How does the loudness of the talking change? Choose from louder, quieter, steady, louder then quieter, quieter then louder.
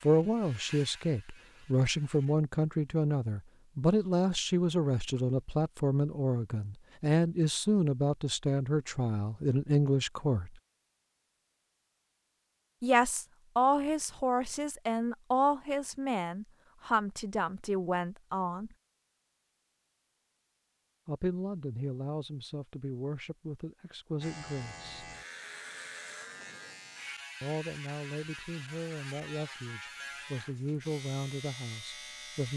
quieter.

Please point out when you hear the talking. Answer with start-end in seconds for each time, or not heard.
0.0-10.5, 12.8-18.8, 21.1-25.1, 27.4-32.5.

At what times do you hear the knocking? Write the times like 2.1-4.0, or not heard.
not heard.